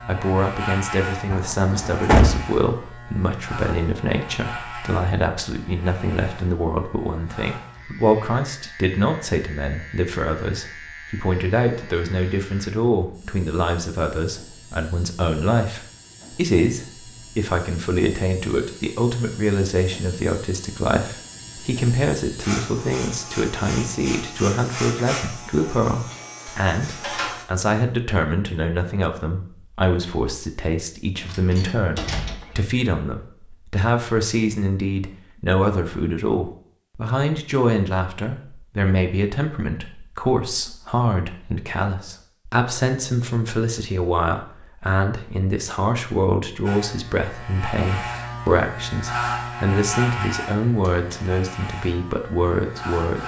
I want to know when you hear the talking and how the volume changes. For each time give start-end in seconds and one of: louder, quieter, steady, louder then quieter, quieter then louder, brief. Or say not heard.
0.1-53.2 steady.